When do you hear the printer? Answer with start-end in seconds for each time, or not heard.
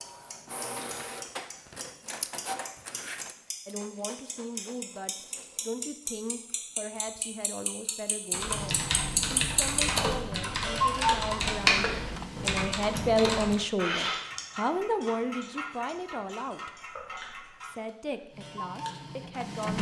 0.0-5.8, 8.5-12.7, 18.3-19.7.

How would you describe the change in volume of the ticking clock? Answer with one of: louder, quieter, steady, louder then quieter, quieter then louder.
louder then quieter.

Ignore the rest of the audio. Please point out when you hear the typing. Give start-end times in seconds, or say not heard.
8.3-13.6.